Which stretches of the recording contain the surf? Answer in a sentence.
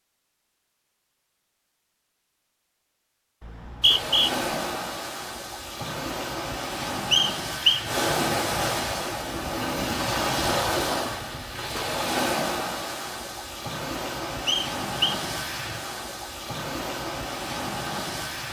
You can hear the surf from 3.8 to 18.4 s.